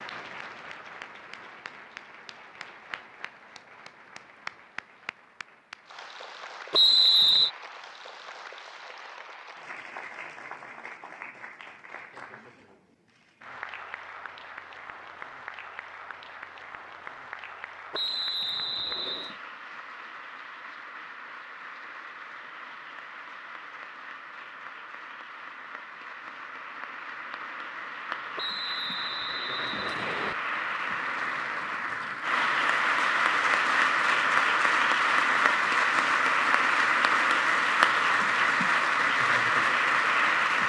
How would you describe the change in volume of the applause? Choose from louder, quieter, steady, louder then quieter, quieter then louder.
louder.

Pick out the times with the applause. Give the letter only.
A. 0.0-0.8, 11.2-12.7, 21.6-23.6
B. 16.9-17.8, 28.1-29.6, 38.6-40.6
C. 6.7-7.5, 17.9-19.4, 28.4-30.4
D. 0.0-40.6
D.